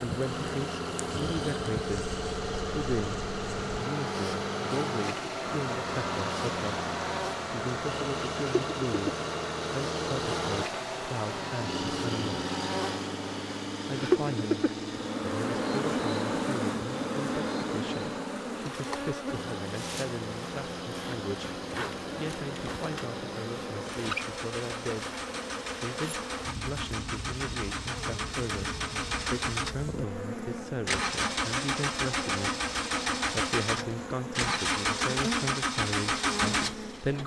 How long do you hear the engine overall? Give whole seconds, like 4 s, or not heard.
37 s.